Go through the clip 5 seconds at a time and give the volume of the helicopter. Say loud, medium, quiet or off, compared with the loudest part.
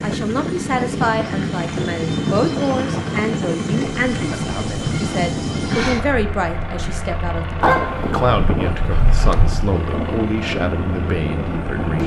loud, loud, medium.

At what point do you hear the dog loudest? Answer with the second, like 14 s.
8 s.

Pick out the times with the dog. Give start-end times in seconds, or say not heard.
7.6-9.6.